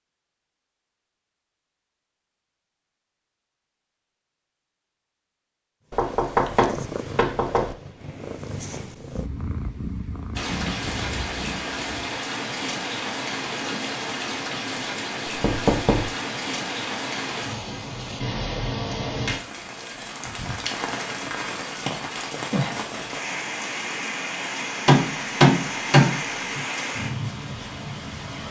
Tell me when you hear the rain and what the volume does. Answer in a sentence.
You can hear the rain from 10.3 to 28.4 s, at a steady volume.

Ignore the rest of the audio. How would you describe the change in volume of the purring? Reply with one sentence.
The loudness of the purring stays about the same.